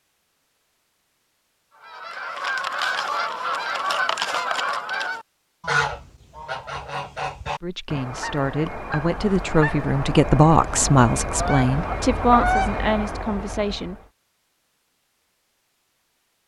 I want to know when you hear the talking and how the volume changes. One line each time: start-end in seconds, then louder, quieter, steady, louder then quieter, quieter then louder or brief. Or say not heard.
7.6-13.9 louder then quieter.